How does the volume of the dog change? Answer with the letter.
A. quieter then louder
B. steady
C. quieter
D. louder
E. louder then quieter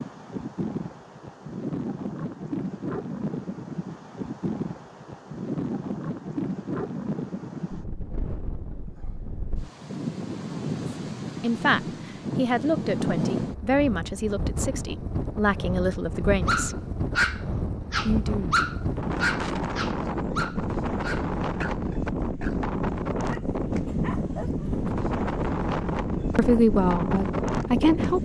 C.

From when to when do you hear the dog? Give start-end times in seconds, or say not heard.
16.4-24.9.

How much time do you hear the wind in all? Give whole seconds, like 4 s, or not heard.
28 s.